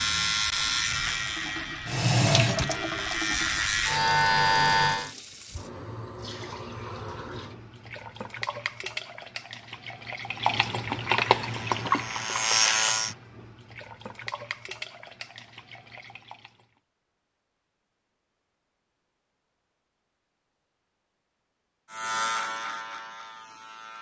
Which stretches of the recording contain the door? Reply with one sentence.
You can't hear the door here.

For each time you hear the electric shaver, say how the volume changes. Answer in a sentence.
You can hear the electric shaver from 0.0 to 5.2 s, getting quieter then louder; briefly from 11.3 to 13.2 s; and briefly from 21.9 to 23.9 s.